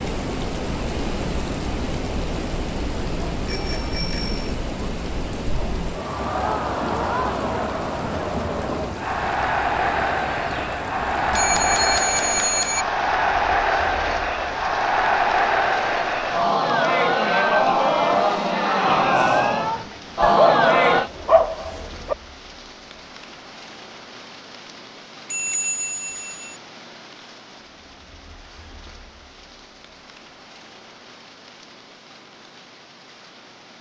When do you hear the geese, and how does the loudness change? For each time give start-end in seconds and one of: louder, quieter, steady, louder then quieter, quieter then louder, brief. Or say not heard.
not heard.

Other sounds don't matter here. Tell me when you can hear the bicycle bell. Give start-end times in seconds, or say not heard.
3.5-4.5, 11.3-12.8, 25.3-26.6.